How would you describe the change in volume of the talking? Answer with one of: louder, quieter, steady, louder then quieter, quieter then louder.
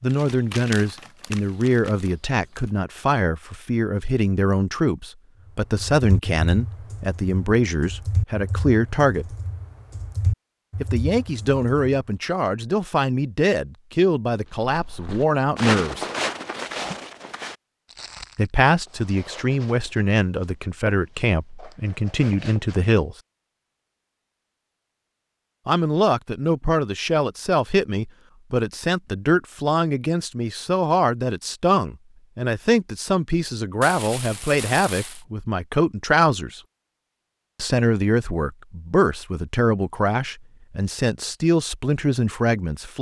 steady.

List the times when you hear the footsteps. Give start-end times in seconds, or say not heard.
14.4-22.9.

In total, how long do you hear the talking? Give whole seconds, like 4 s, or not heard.
36 s.